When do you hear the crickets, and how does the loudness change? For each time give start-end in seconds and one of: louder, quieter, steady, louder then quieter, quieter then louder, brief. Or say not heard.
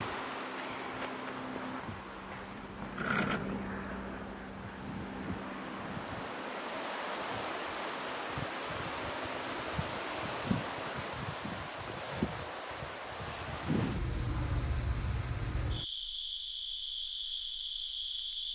0.0-18.5 louder.